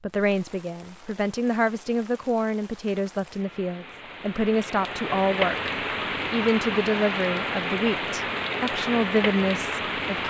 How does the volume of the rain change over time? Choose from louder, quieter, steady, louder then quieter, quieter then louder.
louder.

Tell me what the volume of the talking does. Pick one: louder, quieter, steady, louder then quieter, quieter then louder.
steady.